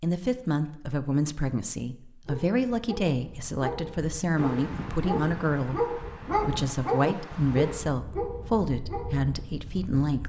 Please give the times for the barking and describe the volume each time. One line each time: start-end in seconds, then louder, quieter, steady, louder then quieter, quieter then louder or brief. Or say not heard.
2.2-9.6 louder then quieter.